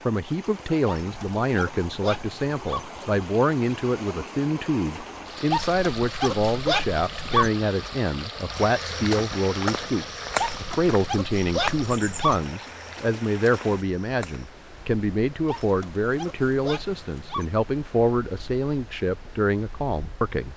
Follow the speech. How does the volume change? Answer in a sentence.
The volume of the speech stays about the same.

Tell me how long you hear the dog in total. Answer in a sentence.
You can hear the dog for 8 seconds altogether.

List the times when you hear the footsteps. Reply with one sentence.
The footsteps can be heard from 8.5 to 14.5 s.